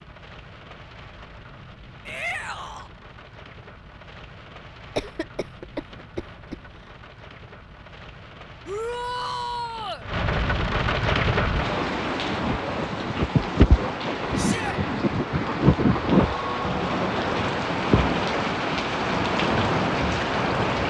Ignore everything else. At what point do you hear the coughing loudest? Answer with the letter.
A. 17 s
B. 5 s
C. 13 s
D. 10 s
B.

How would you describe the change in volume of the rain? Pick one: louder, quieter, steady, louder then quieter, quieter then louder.
louder.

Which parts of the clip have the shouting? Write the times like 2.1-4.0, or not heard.
2.0-2.9, 8.7-10.1, 14.3-14.8.